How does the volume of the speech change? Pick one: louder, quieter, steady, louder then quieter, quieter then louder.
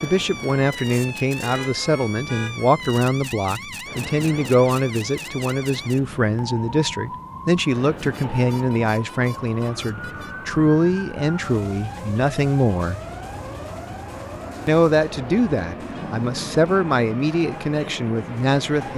steady.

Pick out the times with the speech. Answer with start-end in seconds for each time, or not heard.
0.0-13.0, 14.7-18.9.